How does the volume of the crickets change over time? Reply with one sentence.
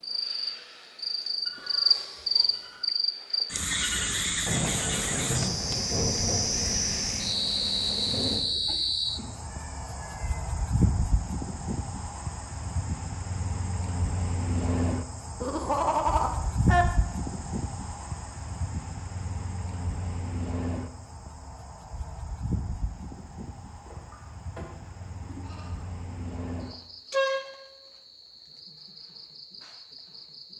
The loudness of the crickets goes down.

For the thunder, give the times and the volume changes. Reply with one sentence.
The thunder can be heard from 4.5 to 8.5 s, getting quieter.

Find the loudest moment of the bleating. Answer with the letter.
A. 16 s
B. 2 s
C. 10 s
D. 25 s
A.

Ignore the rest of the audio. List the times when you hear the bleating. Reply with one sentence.
The bleating can be heard from 1.4 to 2.8 s, from 8.3 to 10.8 s, from 15.4 to 16.9 s and from 23.9 to 25.9 s.